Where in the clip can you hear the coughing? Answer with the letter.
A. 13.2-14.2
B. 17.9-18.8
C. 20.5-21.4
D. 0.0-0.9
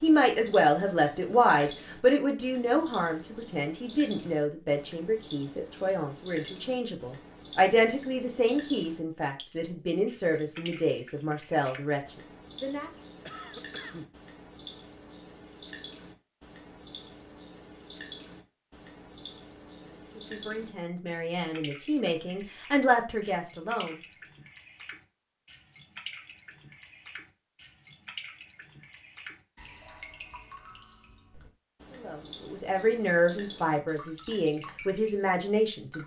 A.